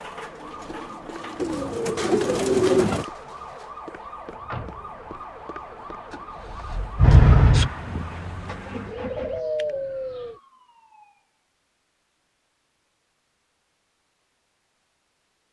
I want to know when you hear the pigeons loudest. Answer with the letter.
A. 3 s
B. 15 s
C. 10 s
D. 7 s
A.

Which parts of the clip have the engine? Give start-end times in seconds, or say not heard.
7.0-9.4.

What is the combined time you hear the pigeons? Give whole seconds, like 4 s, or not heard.
3 s.